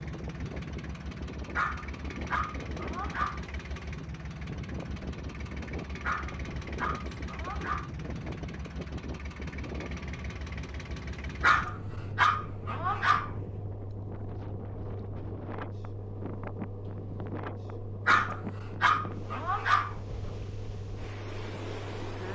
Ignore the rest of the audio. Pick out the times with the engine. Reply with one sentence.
You can hear the engine from 0.0 to 22.2 s.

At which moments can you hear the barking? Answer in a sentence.
You can hear the barking from 1.6 to 3.5 s, from 6.0 to 7.9 s, from 11.4 to 13.3 s and from 18.1 to 19.9 s.